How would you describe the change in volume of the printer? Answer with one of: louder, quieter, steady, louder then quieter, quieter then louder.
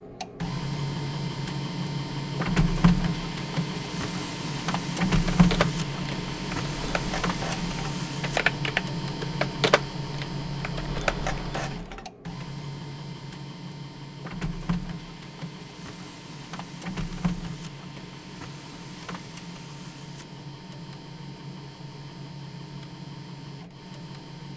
quieter.